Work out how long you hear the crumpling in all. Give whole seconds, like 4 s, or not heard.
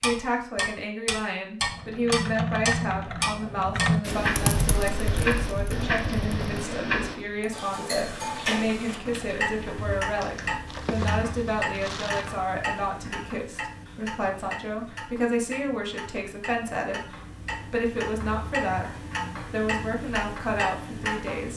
2 s.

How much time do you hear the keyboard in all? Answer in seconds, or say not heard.
9 s.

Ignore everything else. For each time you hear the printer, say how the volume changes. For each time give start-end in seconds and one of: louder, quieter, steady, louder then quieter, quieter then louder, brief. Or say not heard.
not heard.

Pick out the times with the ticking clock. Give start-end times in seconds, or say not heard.
0.0-21.5.